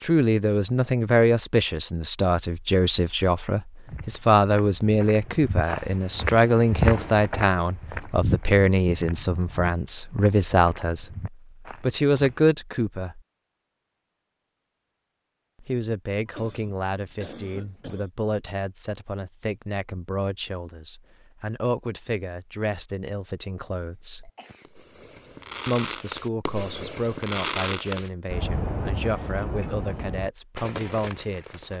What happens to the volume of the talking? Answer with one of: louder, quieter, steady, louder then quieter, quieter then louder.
quieter.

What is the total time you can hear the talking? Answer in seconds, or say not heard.
28 s.